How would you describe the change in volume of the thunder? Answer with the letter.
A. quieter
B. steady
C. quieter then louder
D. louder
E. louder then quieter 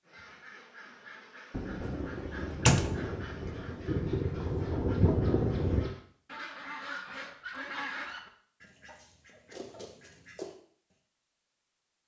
D.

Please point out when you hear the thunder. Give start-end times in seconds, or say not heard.
1.5-6.0.